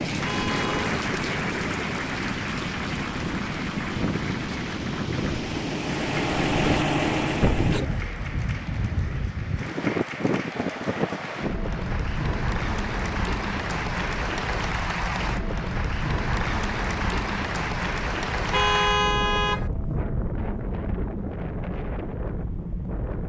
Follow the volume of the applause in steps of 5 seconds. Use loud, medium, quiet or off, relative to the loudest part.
loud, medium, loud, loud, off.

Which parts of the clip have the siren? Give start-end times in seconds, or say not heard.
not heard.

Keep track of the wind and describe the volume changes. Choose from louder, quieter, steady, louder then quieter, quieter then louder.
steady.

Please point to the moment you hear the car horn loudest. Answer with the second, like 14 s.
19 s.